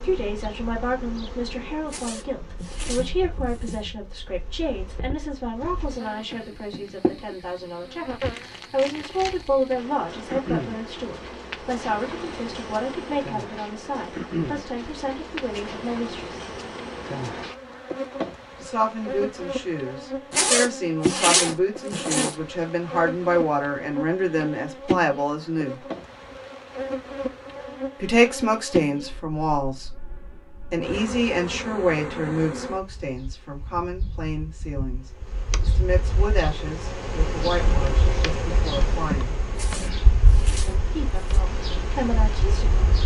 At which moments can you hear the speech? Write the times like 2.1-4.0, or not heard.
0.0-16.4, 18.6-25.8, 28.0-29.9, 30.6-39.4, 40.6-42.8.